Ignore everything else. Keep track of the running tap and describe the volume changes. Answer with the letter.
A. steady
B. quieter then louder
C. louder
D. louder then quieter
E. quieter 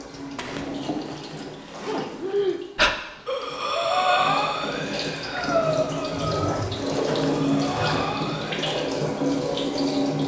B.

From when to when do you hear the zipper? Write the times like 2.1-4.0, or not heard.
0.3-2.4, 6.8-8.1.